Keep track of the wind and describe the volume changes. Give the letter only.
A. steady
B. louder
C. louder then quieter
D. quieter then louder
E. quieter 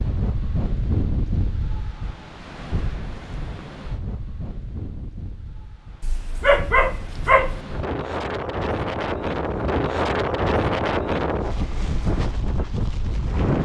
D.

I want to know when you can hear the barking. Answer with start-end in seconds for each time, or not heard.
6.0-7.7.